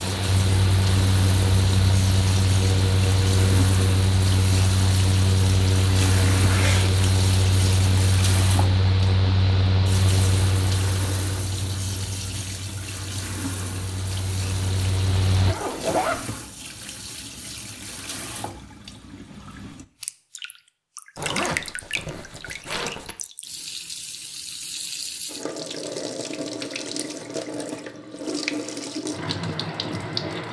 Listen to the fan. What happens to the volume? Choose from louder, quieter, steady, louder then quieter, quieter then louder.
quieter.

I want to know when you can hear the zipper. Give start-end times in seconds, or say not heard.
6.3-7.0, 15.4-16.2, 21.1-23.1.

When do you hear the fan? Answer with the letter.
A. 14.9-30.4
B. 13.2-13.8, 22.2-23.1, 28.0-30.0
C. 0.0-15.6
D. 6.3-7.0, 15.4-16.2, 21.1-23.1
C.